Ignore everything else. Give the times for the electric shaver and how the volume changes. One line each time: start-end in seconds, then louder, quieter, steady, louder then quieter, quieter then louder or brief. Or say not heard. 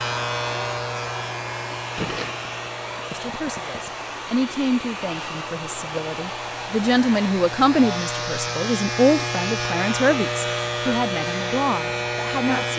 0.0-12.7 quieter then louder.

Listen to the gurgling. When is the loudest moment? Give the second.
2 s.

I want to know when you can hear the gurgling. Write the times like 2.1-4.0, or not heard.
1.9-3.9.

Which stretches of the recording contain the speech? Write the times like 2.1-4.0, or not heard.
3.1-12.7.